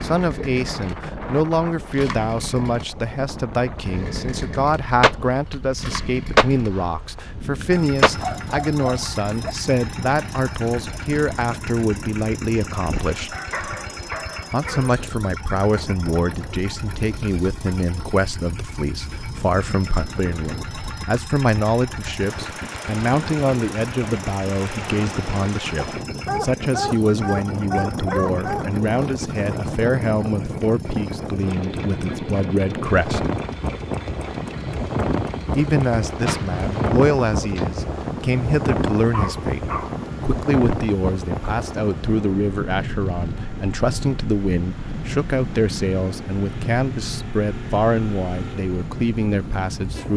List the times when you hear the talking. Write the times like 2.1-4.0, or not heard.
0.0-13.3, 14.5-33.2, 35.5-50.1.